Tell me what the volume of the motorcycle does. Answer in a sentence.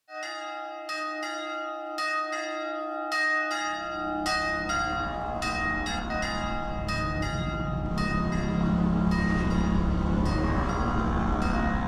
The loudness of the motorcycle goes up.